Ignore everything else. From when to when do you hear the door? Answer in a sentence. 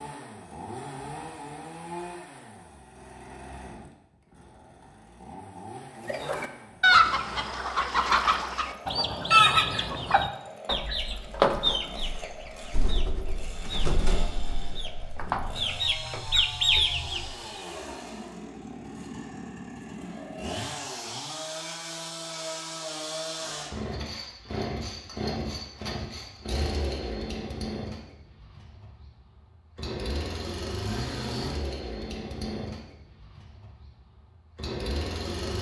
You can't hear the door here.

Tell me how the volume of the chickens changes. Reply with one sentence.
The loudness of the chickens goes down, then up.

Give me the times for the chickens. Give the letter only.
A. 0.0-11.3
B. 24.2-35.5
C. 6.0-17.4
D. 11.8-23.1
C.